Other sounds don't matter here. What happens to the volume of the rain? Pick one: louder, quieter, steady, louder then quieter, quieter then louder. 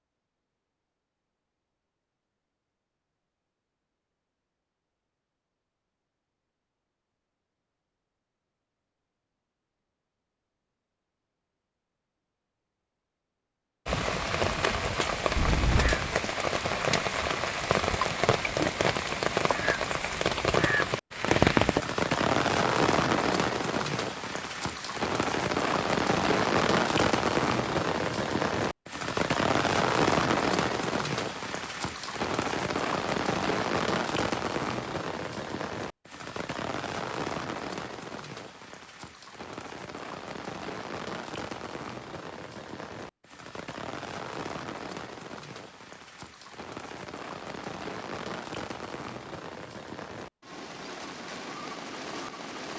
quieter.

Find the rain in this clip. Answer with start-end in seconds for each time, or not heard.
13.8-52.7.